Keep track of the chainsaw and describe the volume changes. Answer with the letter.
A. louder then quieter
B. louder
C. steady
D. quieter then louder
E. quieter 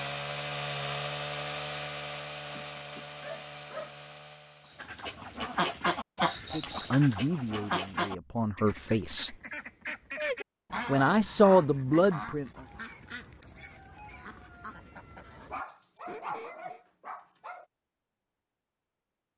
E.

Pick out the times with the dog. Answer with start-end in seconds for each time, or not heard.
2.5-3.9, 15.3-17.6.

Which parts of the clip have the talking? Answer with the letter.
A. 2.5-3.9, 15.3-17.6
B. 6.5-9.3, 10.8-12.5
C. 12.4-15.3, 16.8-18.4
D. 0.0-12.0
B.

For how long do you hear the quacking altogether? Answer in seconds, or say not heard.
12 s.